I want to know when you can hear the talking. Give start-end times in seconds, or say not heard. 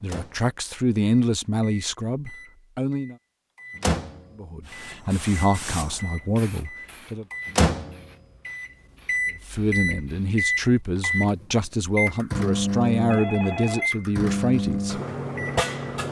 0.0-3.1, 4.3-7.2, 9.3-15.0.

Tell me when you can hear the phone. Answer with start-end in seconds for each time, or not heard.
13.1-13.9.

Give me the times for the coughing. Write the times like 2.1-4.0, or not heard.
not heard.